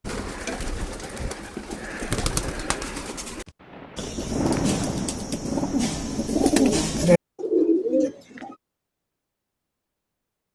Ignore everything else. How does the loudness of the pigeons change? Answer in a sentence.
The loudness of the pigeons goes up.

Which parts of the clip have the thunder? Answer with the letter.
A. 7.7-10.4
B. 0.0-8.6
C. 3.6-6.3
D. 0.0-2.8
C.